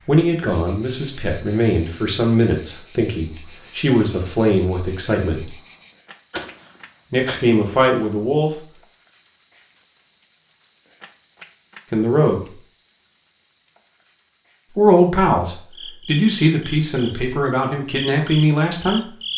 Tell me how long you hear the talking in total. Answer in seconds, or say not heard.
12 s.